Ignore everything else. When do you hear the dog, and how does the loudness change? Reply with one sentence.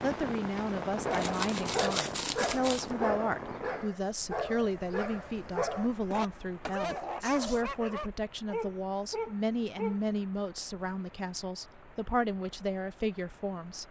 You can hear the dog from 0.9 to 10.0 s, at a steady volume.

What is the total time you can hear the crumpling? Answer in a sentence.
You can hear the crumpling for 2 seconds altogether.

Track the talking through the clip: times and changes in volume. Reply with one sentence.
You can hear the talking from 0.0 to 13.8 s, at a steady volume.